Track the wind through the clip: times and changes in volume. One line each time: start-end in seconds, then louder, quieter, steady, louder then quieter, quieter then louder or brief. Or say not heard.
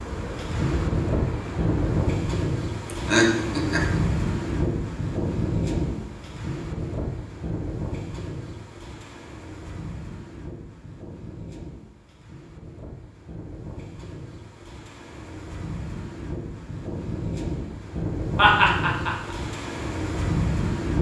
0.0-20.9 quieter then louder.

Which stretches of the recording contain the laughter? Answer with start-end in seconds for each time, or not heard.
2.9-4.0, 18.4-19.4.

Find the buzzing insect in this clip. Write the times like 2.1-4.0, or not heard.
0.0-2.1.